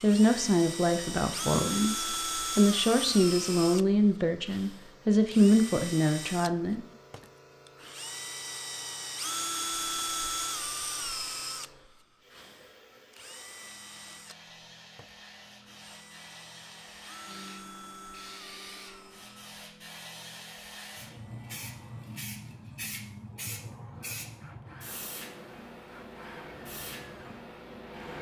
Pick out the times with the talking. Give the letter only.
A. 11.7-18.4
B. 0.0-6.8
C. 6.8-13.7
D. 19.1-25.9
B.